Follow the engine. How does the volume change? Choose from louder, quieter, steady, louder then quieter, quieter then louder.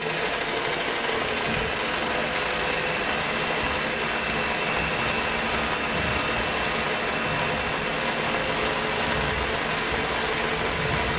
steady.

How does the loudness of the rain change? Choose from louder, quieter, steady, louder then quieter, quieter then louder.
steady.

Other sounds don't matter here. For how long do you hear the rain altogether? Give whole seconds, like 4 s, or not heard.
11 s.